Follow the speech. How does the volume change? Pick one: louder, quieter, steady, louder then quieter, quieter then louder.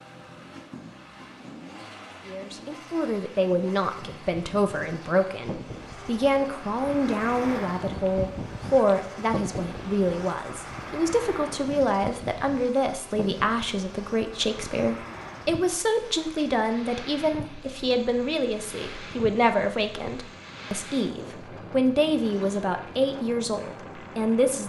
steady.